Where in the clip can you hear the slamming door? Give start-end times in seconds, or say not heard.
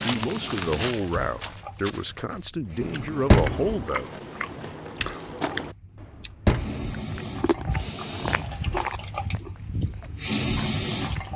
2.8-3.9, 6.0-7.0.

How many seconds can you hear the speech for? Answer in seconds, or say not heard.
4 s.